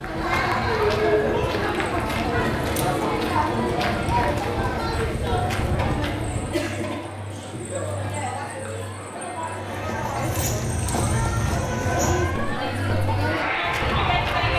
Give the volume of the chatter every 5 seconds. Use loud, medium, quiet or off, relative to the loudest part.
loud, medium, loud.